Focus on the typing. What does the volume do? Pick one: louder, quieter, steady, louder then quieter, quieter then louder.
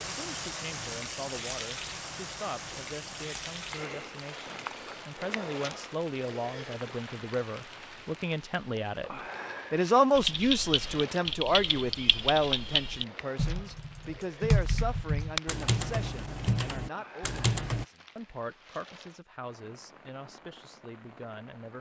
steady.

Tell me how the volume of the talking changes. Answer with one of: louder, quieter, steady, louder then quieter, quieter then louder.
louder then quieter.